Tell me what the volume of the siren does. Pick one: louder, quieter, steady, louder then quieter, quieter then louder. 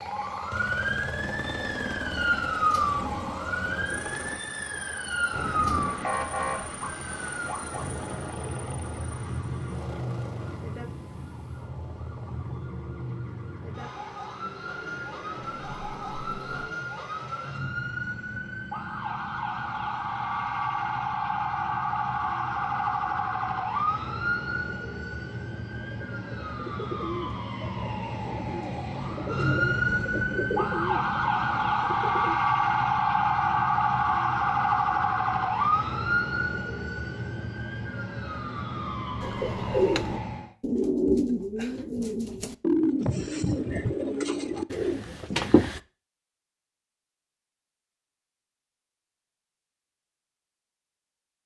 quieter then louder.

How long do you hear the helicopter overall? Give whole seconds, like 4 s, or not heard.
17 s.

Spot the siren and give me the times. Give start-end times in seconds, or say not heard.
0.0-40.5.